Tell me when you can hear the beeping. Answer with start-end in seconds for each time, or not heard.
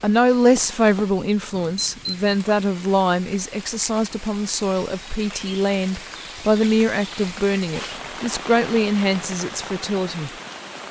1.5-2.4.